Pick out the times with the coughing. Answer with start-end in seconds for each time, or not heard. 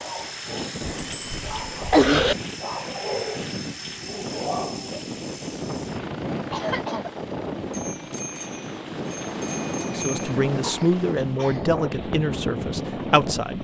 0.8-2.4, 6.5-7.1, 10.6-11.7.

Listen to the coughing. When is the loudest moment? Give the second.
2 s.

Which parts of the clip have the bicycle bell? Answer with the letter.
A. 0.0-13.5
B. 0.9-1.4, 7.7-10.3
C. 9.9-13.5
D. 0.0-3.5
B.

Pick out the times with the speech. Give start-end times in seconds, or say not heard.
9.9-13.5.